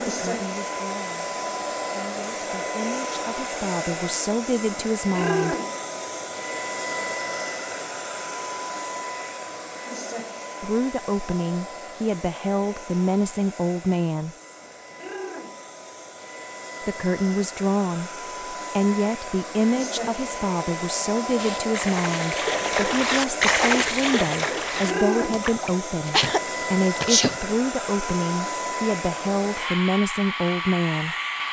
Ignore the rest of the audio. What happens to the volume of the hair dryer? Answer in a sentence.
The volume of the hair dryer goes down, then up.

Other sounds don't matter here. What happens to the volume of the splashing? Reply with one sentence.
The volume of the splashing goes up, then down.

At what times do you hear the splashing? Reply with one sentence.
The splashing can be heard from 21.4 to 27.1 s.